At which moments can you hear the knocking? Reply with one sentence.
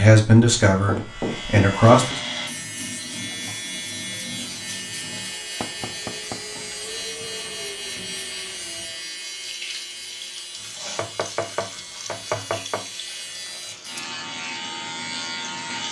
You can hear the knocking from 0.7 to 2.2 s, from 5.6 to 6.5 s and from 10.9 to 12.8 s.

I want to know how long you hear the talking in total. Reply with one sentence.
The talking can be heard for 2 seconds in total.